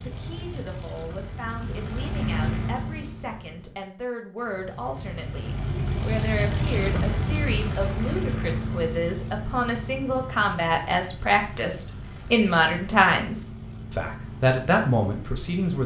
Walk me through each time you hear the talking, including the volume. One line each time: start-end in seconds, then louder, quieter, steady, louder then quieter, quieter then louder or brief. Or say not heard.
0.0-15.8 louder.